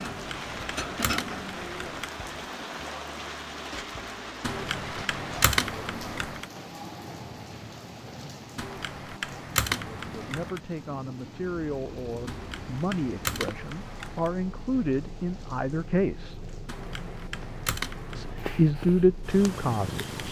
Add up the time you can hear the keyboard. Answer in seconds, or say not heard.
10 s.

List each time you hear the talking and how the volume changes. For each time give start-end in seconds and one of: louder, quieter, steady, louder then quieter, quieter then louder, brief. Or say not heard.
10.1-16.4 louder
18.1-20.1 brief.